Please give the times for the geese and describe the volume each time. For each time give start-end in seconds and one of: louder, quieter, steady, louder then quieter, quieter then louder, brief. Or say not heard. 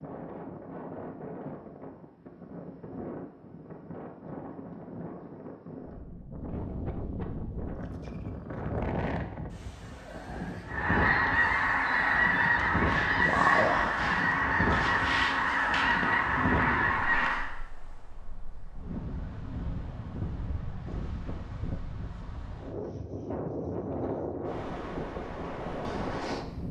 10.7-17.5 steady.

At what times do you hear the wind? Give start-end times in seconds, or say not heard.
0.0-26.6.